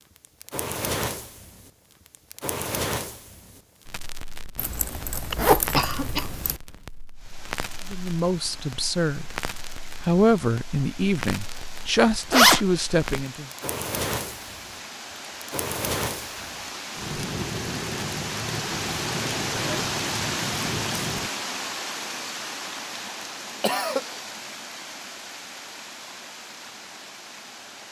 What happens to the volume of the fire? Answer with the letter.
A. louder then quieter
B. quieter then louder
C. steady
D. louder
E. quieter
B.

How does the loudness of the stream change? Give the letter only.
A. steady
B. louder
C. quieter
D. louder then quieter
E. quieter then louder
D.